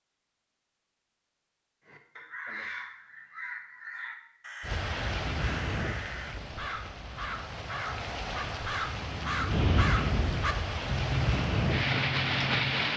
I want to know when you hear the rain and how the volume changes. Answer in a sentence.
The rain can be heard from 4.6 to 12.9 s, getting quieter then louder.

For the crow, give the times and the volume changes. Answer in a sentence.
The crow can be heard from 1.9 to 12.9 s, getting louder.